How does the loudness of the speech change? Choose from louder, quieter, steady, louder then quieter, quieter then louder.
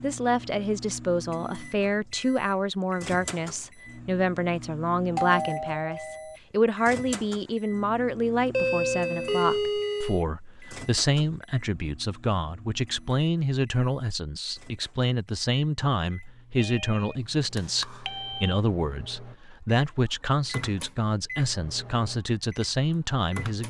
steady.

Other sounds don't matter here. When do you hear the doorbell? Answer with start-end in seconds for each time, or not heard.
5.2-6.4, 8.5-10.2, 16.6-18.6.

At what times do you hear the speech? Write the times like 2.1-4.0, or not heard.
0.0-23.6.